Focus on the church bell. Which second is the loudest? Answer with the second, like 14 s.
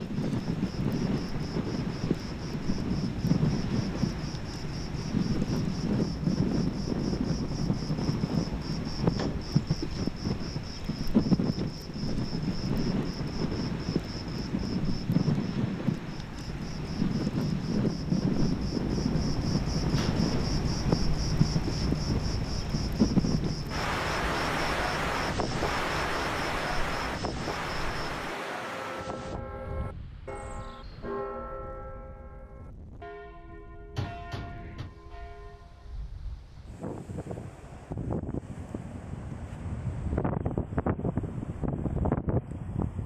31 s.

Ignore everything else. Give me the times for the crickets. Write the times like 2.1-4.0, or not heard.
0.0-28.4.